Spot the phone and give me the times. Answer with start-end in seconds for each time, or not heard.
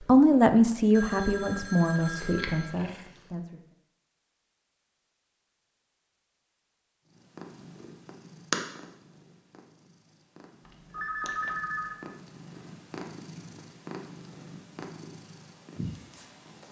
0.9-2.8, 10.7-12.0.